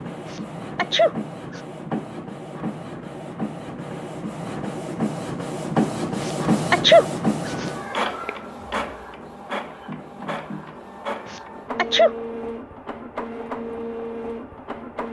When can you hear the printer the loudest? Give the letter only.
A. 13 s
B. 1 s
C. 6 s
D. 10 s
C.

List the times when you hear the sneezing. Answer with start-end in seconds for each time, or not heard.
0.2-1.6, 6.2-7.7, 11.2-12.1.